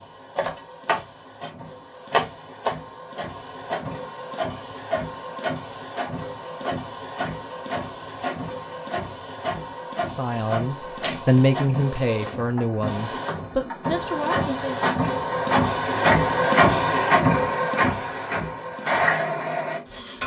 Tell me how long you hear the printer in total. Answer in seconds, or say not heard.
20 s.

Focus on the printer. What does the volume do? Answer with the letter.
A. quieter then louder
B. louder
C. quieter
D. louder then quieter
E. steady
B.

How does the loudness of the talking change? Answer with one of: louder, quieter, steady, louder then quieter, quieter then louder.
louder then quieter.